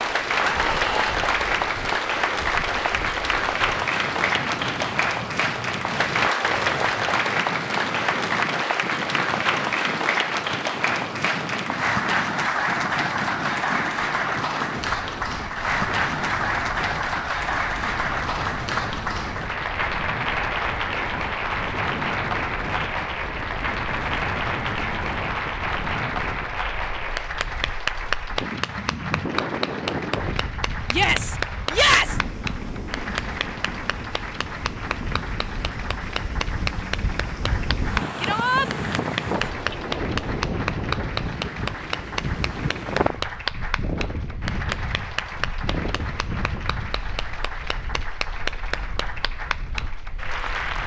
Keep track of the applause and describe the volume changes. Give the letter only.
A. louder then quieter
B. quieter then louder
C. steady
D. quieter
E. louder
D.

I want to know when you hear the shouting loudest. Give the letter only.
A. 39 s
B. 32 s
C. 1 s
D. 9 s
B.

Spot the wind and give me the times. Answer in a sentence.
You can hear the wind from 0.0 to 50.8 s.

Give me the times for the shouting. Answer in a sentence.
The shouting can be heard from 0.4 to 1.2 s, from 30.9 to 32.2 s and from 38.2 to 38.6 s.